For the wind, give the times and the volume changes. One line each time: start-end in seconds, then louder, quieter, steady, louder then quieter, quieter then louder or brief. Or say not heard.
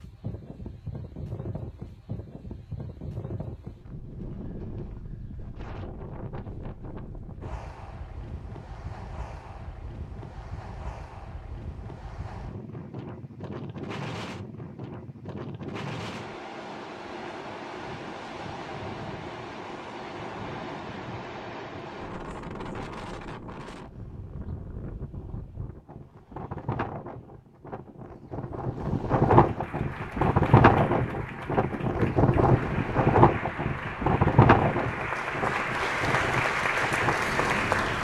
0.0-37.9 louder.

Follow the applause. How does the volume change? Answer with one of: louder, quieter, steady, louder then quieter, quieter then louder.
louder.